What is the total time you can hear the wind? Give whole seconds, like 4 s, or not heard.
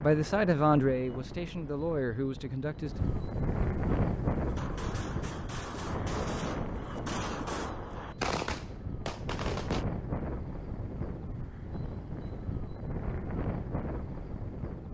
15 s.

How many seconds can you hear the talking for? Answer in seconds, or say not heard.
3 s.